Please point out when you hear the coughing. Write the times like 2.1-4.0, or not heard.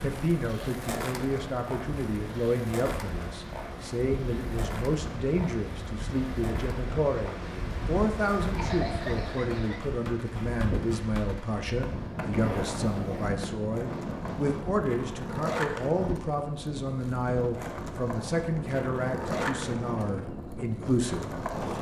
8.6-9.8.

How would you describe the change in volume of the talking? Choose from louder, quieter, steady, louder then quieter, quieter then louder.
steady.